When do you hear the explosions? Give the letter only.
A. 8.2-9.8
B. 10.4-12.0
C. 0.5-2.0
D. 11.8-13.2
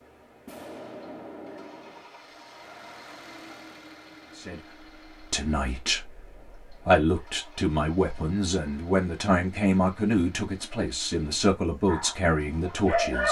C.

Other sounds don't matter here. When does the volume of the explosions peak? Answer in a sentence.
The loudest moment of the explosions is at 1 second.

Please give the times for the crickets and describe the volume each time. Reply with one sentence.
The crickets can't be heard in this clip.